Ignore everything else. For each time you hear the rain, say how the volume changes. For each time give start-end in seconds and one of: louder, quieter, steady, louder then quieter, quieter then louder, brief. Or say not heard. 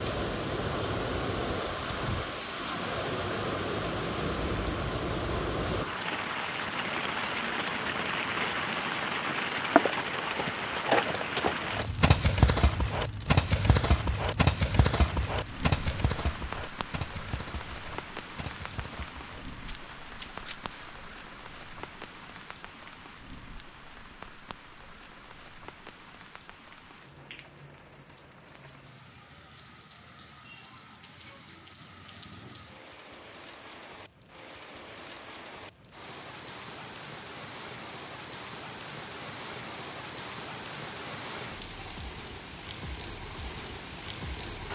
0.0-44.7 quieter then louder.